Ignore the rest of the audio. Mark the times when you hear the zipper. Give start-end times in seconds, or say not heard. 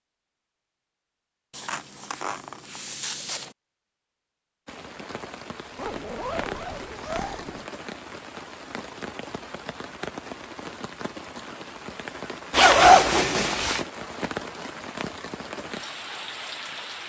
1.5-3.5, 5.8-7.7, 12.5-13.8.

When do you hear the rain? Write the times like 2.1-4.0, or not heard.
4.7-17.0.